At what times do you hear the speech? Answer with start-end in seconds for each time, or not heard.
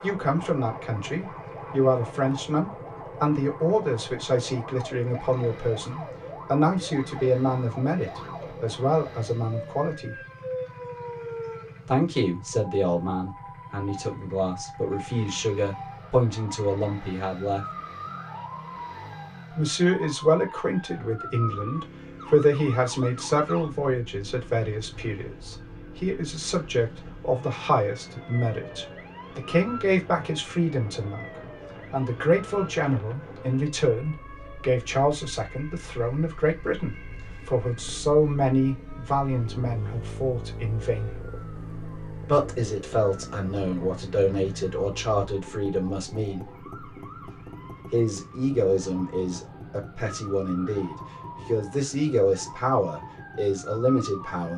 0.0-10.2, 11.8-17.6, 19.5-41.1, 42.2-46.5, 47.9-54.5.